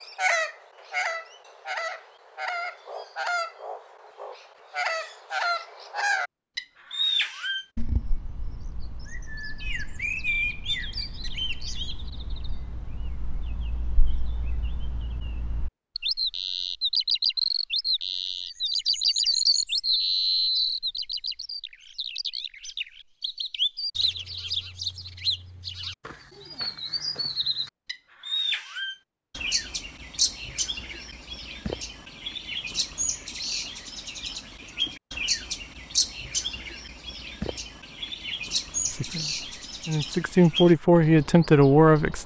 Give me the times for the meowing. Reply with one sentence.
The meowing can't be heard in this clip.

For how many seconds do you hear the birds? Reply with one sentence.
You can hear the birds for 42 seconds altogether.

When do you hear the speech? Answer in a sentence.
The speech can be heard from 38.9 to 42.2 s.